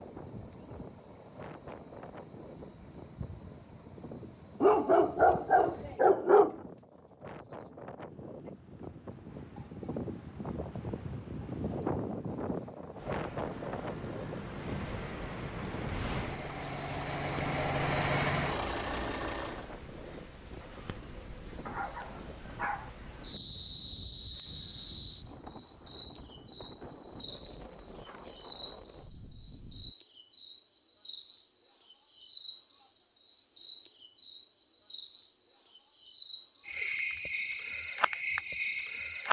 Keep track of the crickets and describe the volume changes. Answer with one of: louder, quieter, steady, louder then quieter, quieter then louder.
quieter then louder.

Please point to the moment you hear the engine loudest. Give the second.
18 s.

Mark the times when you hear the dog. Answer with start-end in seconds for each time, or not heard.
4.6-6.5, 21.6-22.9.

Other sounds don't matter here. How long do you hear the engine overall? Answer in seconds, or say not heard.
5 s.